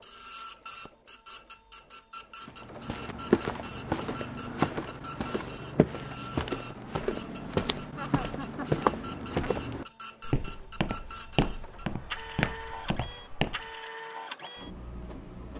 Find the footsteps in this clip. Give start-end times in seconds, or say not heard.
2.5-13.6.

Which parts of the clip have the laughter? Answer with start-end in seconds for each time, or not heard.
8.0-8.8.